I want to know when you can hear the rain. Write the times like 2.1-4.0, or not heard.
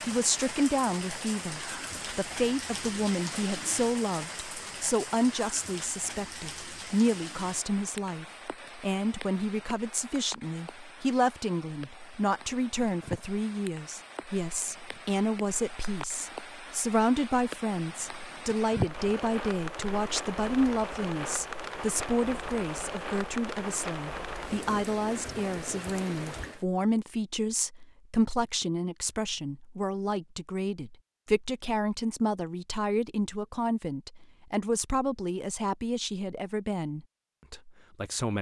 0.0-26.6.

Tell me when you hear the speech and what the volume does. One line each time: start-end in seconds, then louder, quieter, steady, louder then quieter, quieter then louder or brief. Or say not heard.
0.0-38.3 steady.